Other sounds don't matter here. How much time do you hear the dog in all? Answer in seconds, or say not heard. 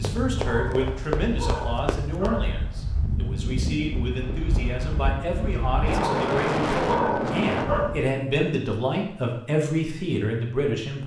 4 s.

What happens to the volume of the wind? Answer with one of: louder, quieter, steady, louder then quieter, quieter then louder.
louder.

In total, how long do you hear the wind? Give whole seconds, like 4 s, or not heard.
8 s.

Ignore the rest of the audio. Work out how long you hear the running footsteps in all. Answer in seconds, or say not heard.
2 s.